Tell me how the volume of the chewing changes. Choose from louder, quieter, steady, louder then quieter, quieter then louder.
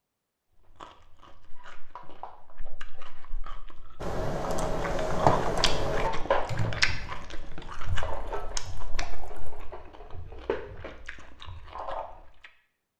louder then quieter.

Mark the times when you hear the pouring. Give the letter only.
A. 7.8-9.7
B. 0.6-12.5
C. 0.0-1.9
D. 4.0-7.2
A.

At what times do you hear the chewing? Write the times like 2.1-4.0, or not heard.
0.6-12.5.